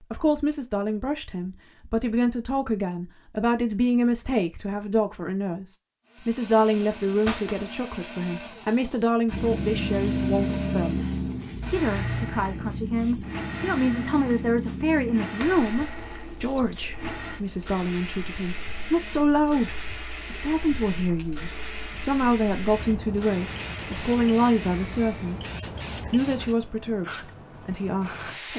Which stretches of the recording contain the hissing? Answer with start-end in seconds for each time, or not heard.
9.2-28.5.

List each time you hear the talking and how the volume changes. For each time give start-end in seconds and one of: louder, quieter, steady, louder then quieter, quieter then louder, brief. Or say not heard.
0.0-11.1 steady
11.7-25.5 steady
26.1-28.5 brief.